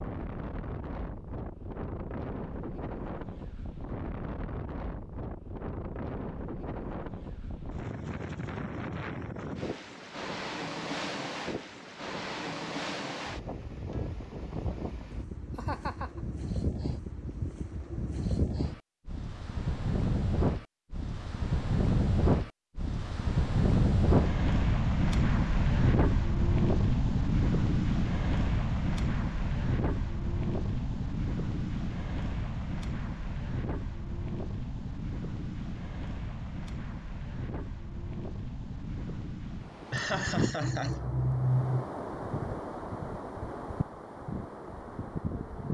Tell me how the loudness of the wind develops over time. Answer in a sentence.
The volume of the wind goes up, then down.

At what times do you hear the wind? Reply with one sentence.
You can hear the wind from 0.0 to 45.6 s.